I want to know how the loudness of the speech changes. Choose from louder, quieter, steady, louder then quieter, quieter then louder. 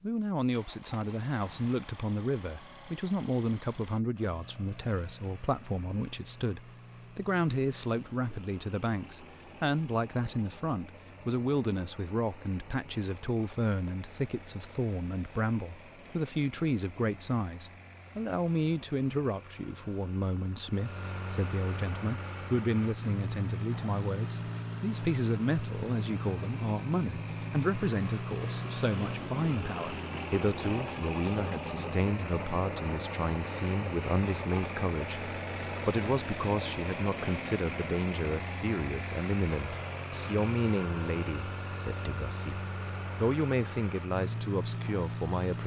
steady.